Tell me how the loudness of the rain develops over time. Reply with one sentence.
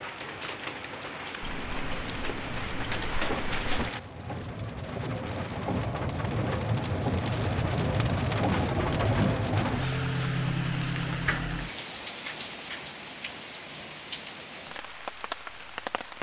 The loudness of the rain goes up, then down.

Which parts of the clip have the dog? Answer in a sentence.
You can't hear the dog here.